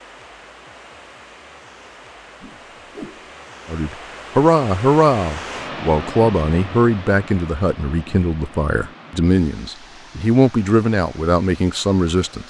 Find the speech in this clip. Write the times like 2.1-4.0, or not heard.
3.6-12.4.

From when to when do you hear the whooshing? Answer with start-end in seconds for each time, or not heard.
2.4-3.3.